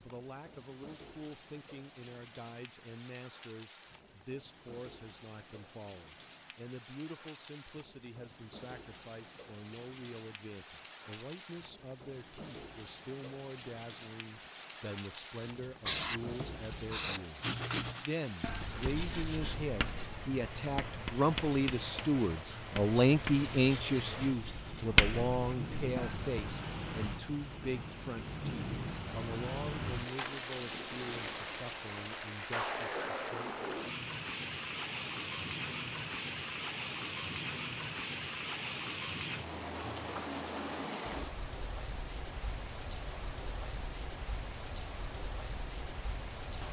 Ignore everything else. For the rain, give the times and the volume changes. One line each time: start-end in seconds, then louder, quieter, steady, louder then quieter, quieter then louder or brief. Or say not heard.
0.0-46.6 louder.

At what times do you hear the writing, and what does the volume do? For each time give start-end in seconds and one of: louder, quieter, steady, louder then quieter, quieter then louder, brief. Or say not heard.
15.3-26.3 quieter then louder.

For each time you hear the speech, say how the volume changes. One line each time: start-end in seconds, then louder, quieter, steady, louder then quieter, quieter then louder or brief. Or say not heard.
0.0-33.5 louder then quieter.